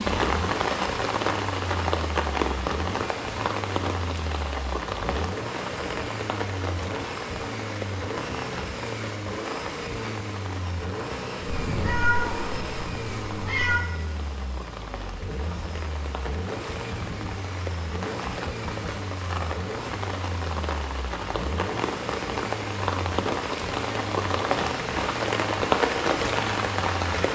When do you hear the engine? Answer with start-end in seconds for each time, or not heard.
0.1-27.3.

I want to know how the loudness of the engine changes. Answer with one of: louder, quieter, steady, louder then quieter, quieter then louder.
steady.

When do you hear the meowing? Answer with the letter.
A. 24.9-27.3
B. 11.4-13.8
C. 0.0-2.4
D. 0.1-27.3
B.